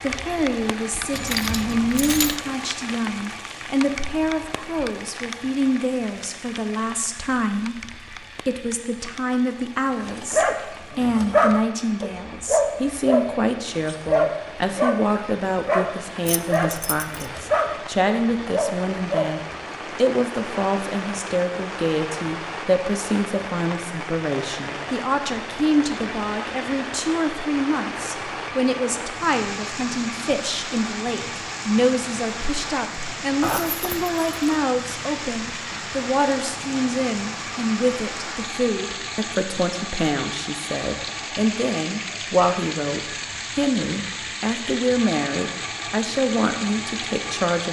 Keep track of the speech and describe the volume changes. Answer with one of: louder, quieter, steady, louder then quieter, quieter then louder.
steady.